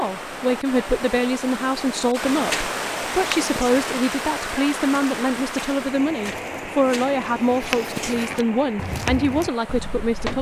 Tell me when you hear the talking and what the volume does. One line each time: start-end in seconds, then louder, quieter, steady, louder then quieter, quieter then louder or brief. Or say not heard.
0.0-10.3 steady.